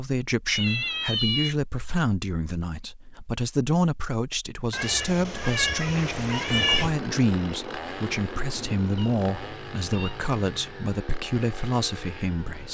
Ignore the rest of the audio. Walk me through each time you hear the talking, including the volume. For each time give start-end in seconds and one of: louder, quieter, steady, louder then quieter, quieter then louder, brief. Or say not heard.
0.0-12.6 steady.